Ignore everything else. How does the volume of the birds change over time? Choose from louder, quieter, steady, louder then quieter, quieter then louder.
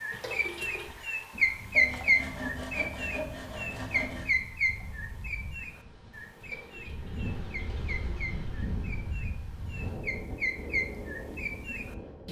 quieter then louder.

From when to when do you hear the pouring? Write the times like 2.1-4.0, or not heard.
0.1-0.9, 6.3-8.7.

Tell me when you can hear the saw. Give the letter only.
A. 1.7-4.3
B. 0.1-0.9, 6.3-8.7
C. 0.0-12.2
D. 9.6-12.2
A.